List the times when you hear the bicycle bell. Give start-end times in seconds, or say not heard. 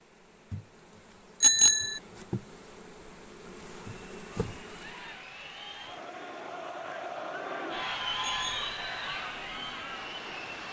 1.4-2.0, 8.2-8.7.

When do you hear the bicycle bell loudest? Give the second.
2 s.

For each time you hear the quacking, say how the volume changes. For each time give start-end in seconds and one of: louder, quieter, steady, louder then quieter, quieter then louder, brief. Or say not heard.
not heard.